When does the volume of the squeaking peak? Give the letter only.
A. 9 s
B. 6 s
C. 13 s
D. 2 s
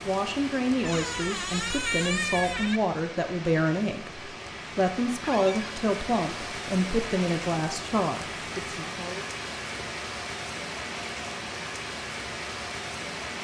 D.